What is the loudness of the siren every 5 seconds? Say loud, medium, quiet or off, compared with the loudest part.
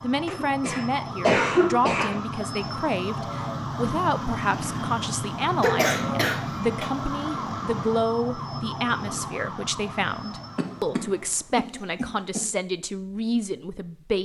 loud, loud, medium.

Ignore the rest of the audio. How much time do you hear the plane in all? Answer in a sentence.
You can't hear the plane here.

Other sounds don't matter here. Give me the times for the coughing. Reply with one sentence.
The coughing can be heard from 0.2 to 2.2 s, from 5.6 to 6.8 s and from 10.6 to 12.4 s.